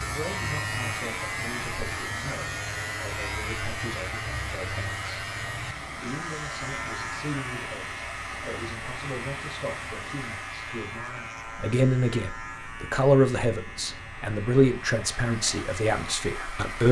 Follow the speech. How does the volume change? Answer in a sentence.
The loudness of the speech goes up.